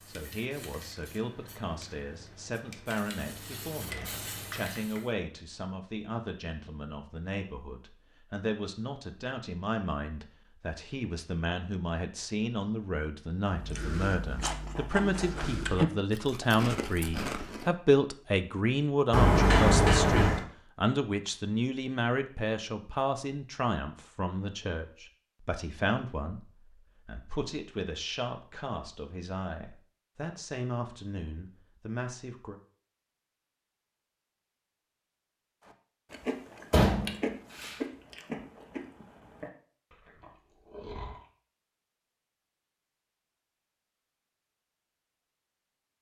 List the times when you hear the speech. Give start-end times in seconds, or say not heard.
0.1-32.5.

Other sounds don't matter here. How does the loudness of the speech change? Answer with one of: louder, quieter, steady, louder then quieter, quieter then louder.
louder then quieter.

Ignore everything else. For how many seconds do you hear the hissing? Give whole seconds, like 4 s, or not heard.
5 s.